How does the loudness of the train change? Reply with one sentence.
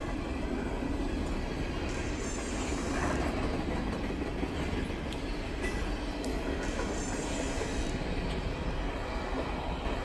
The loudness of the train stays about the same.